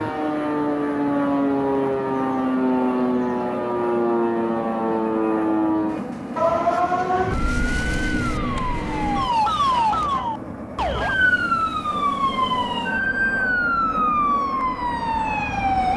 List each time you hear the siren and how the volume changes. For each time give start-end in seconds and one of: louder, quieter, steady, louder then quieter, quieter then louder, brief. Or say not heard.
0.0-15.9 steady.